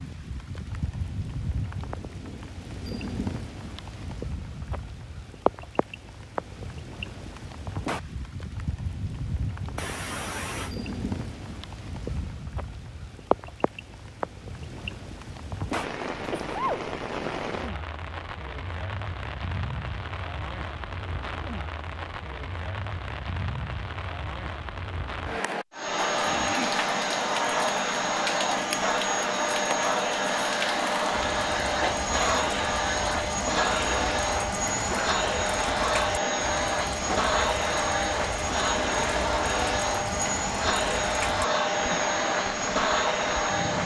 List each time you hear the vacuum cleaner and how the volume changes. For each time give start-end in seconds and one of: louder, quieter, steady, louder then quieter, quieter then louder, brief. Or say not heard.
25.7-43.8 steady.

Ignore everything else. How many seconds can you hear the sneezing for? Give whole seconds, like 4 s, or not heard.
2 s.